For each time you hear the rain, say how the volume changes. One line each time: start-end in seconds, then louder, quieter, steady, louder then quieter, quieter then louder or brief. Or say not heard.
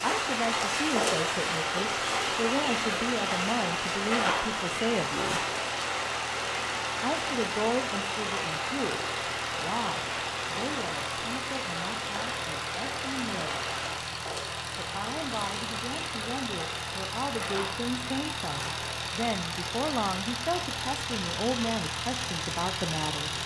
0.0-23.4 quieter.